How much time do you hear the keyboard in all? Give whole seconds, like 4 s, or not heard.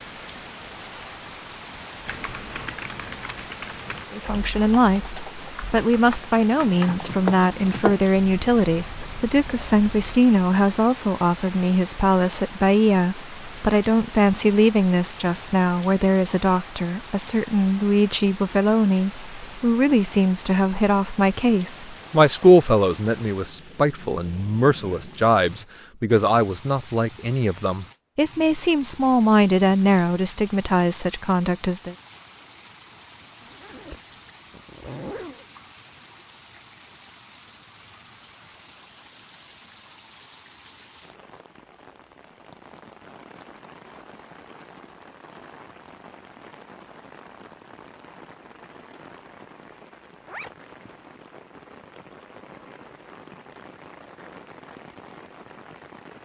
6 s.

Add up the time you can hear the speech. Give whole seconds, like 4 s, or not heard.
28 s.